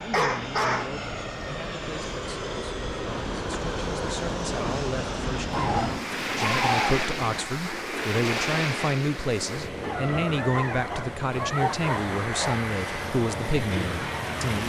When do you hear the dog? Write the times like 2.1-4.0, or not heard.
0.1-1.4, 5.5-6.9, 9.8-12.6.